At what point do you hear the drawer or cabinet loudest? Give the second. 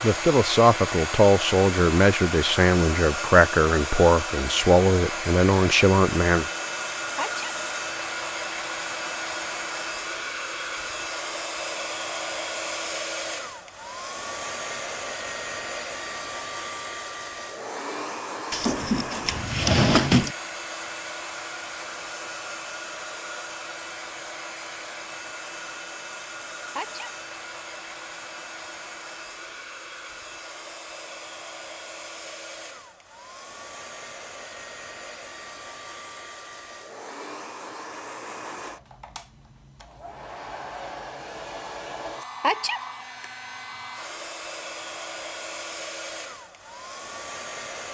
20 s.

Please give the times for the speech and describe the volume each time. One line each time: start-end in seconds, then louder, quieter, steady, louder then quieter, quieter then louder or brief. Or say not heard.
0.0-6.5 steady.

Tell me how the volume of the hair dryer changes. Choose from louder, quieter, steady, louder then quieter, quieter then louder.
quieter.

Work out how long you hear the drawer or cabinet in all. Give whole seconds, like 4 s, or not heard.
2 s.